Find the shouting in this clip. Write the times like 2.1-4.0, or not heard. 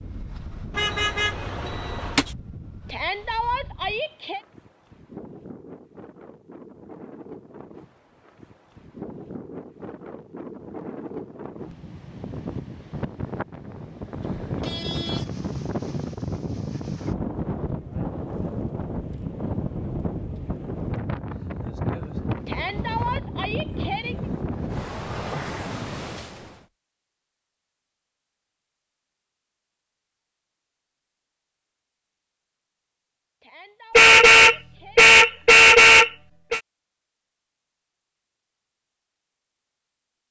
2.9-4.4, 22.4-24.2, 33.4-35.1.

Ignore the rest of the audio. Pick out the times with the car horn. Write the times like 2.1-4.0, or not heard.
0.8-2.2, 14.4-16.1, 34.0-36.6.